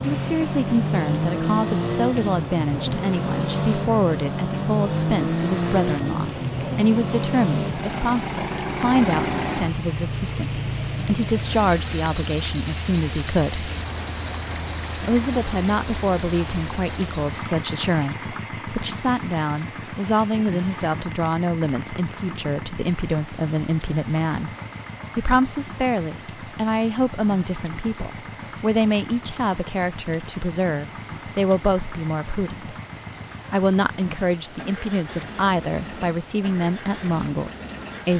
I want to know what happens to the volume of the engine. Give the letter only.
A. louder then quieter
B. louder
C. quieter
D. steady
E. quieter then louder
C.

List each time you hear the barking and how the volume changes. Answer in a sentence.
You can't hear the barking here.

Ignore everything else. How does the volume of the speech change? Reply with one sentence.
The loudness of the speech stays about the same.